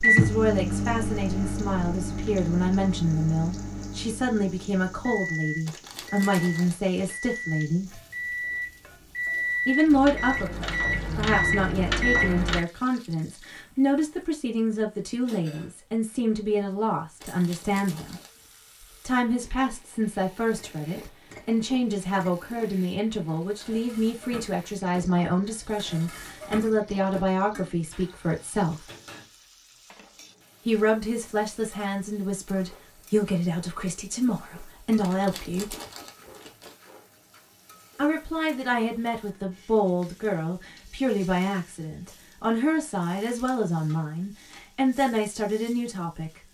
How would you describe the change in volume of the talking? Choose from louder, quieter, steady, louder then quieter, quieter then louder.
steady.